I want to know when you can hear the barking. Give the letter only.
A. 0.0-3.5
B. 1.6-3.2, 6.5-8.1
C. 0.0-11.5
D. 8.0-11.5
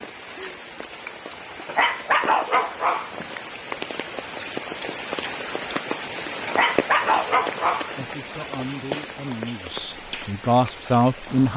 B.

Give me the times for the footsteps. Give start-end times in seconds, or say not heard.
not heard.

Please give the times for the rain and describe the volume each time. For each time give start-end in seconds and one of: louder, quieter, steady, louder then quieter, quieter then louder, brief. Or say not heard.
0.0-11.5 louder then quieter.